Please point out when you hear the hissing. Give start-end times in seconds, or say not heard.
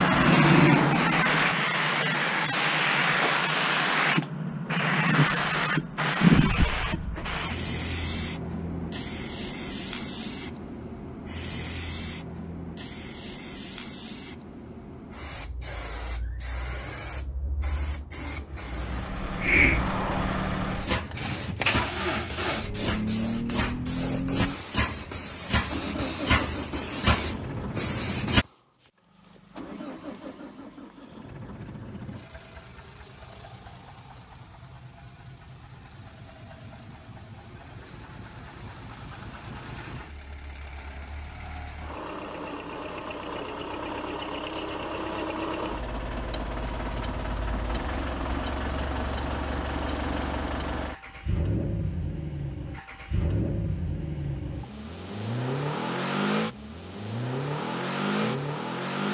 0.0-28.4.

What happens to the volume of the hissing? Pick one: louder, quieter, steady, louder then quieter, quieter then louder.
quieter then louder.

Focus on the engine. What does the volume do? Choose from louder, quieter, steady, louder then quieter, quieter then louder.
quieter then louder.